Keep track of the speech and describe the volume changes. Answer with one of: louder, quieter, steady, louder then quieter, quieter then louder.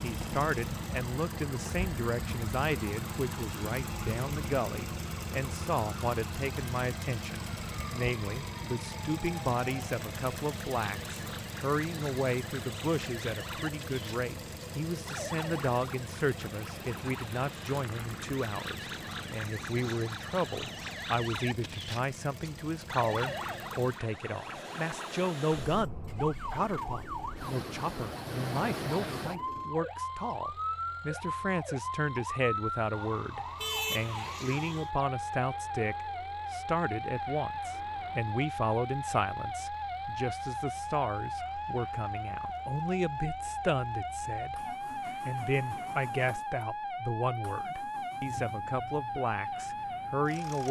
steady.